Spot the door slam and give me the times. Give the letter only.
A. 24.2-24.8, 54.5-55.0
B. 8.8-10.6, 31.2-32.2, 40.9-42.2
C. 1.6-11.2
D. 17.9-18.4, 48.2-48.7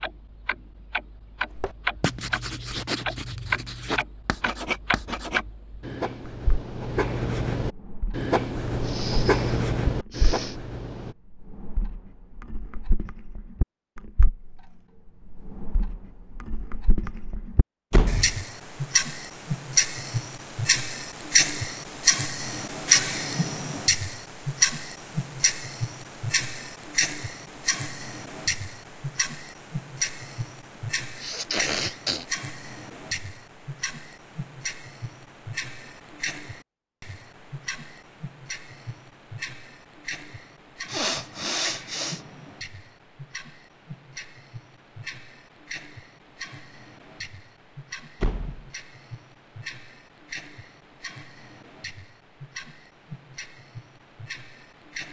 D.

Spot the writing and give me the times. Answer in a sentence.
The writing can be heard from 1.6 to 11.2 s.